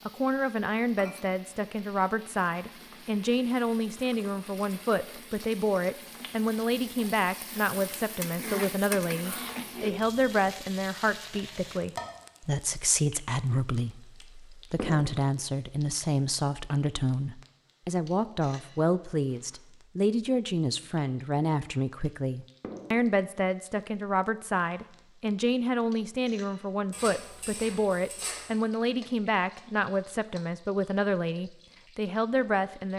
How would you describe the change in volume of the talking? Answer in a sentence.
The volume of the talking stays about the same.